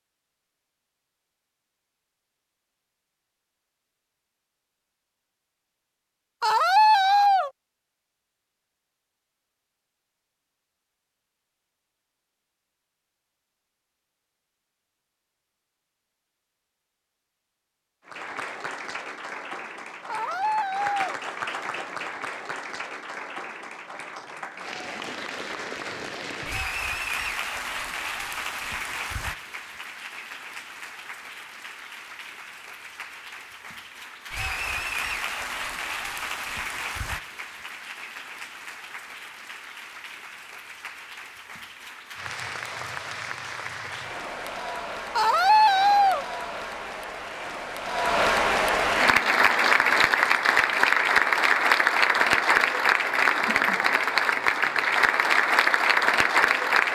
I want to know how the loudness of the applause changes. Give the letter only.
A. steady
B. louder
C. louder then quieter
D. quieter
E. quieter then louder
B.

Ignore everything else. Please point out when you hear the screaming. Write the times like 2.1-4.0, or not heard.
6.4-7.5, 20.1-21.2, 45.1-46.2.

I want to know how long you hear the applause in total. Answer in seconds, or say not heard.
39 s.